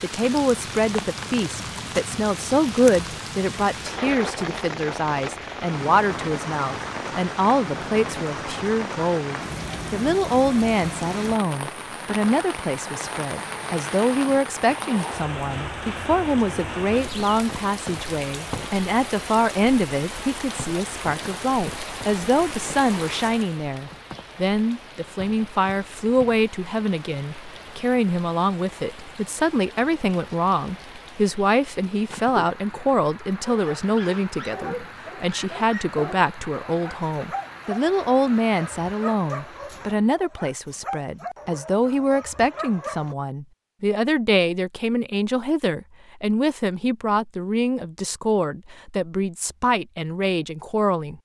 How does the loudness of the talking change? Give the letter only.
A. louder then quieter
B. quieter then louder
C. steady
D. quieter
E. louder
C.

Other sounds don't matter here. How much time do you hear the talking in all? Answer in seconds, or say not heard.
51 s.